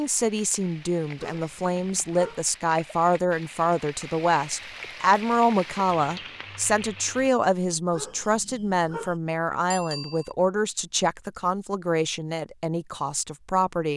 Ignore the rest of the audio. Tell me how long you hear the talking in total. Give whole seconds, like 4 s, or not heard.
14 s.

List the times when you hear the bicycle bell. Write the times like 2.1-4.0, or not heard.
9.7-10.3.